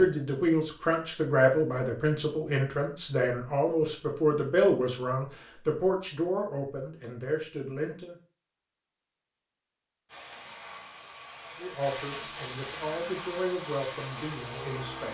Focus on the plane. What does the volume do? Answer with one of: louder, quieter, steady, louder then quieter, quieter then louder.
louder.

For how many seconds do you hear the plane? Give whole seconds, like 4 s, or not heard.
5 s.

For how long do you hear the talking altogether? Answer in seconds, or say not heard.
12 s.